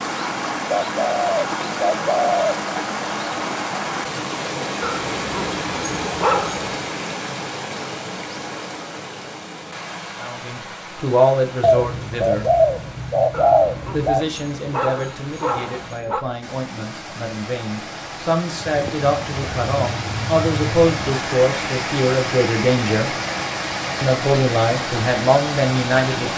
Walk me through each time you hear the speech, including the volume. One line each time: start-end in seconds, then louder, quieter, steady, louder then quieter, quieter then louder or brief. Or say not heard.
10.2-12.4 brief
13.9-23.1 louder
24.0-26.3 brief.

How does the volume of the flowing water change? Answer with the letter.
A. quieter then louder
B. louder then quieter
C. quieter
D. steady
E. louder
A.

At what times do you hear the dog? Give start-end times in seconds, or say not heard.
4.8-6.8, 13.3-16.2.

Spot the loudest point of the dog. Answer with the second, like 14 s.
6 s.